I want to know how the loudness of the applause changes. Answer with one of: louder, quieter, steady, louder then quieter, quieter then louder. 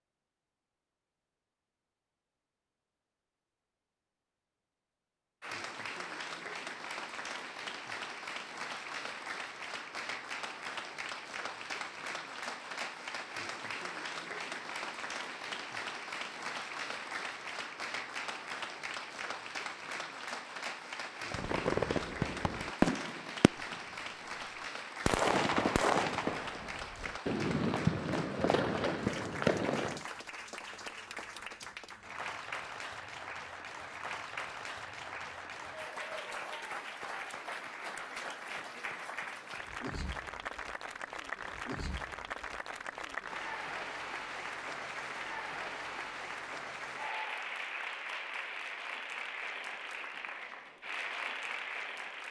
steady.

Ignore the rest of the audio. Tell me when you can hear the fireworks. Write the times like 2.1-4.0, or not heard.
21.3-23.8, 25.1-30.1.